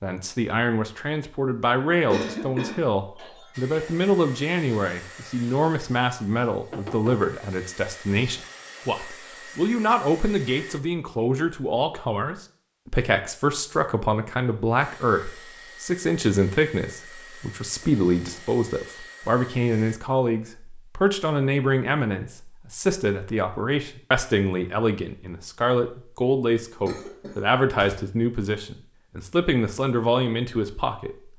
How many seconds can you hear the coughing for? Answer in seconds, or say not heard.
3 s.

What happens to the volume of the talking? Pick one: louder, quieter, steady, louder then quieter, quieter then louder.
steady.